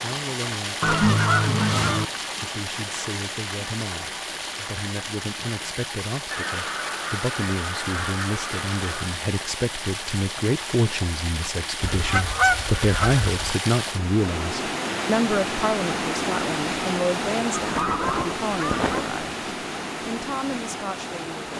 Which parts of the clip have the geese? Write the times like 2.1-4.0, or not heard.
0.8-2.0, 6.3-9.2, 11.8-13.6, 17.6-19.1.